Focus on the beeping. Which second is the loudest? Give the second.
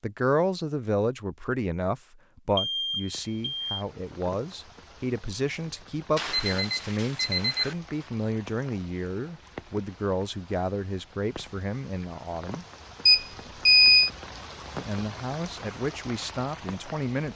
14 s.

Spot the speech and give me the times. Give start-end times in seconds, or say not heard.
0.0-12.7, 14.8-17.3.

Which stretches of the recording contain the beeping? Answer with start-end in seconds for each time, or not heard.
2.5-3.9, 6.2-7.8, 13.1-14.1.